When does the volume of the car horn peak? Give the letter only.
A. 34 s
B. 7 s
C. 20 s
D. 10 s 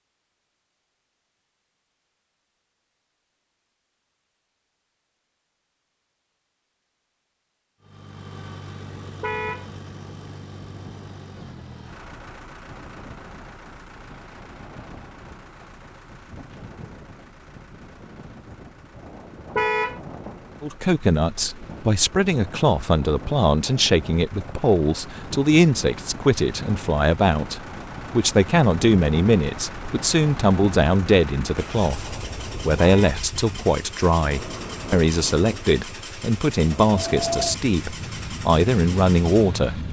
C.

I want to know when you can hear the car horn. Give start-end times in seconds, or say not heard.
9.2-9.7, 19.6-20.0, 32.8-33.2.